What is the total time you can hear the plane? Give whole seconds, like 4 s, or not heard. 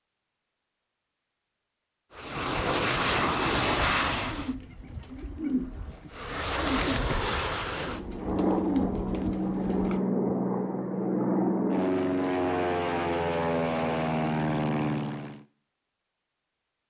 12 s.